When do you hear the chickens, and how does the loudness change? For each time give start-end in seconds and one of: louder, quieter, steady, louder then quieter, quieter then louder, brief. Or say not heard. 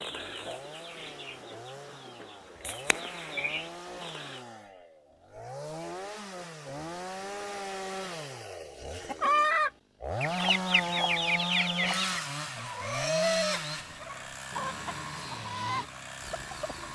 0.0-4.5 quieter then louder
9.1-16.9 quieter.